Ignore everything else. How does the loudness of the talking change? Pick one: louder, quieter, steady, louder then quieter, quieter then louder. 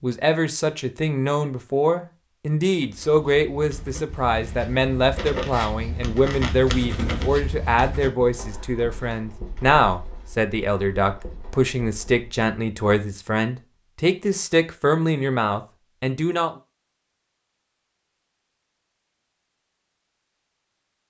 steady.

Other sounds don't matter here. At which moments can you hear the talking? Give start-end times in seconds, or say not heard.
0.0-16.5.